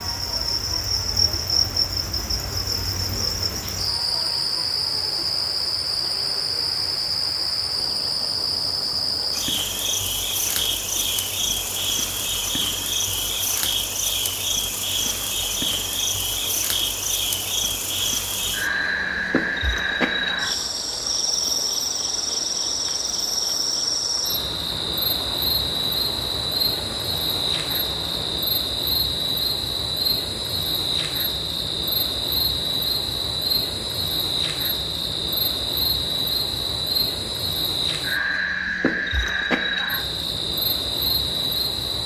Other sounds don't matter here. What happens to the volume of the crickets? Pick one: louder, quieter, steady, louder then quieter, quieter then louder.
steady.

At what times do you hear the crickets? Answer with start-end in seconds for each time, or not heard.
0.0-42.0.